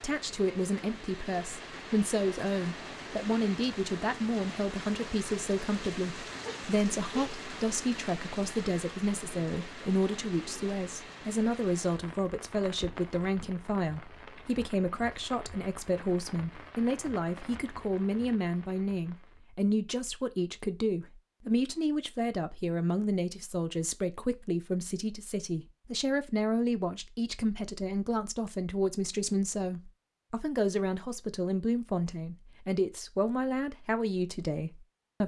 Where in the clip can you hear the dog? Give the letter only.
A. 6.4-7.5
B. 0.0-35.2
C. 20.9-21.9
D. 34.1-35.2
A.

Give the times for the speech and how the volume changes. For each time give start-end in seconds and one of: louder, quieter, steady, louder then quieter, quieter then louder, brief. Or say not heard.
0.0-35.2 steady.